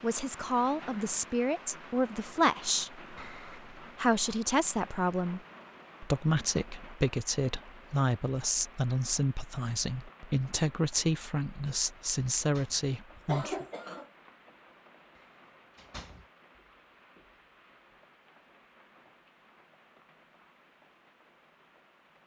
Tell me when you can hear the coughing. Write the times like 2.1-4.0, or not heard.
13.2-14.1.